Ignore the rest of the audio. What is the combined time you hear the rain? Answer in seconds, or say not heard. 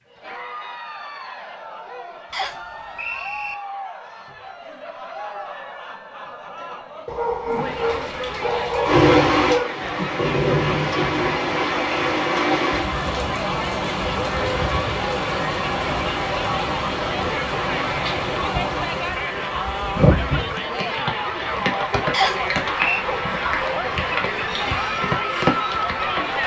19 s.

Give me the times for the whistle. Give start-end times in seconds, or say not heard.
2.3-3.5, 22.1-23.1.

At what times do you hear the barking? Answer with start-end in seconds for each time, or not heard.
7.0-9.7.